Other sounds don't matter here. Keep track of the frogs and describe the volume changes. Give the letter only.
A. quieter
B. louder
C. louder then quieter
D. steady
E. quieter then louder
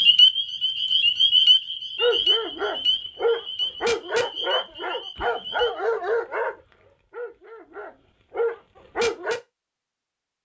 A.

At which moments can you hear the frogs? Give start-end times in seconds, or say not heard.
0.0-5.8.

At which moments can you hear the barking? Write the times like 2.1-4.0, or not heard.
1.9-9.4.